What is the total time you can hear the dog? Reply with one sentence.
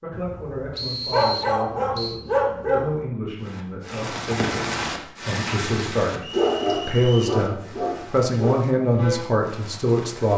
You can hear the dog for 5 seconds altogether.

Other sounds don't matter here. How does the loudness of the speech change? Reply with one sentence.
The volume of the speech goes up.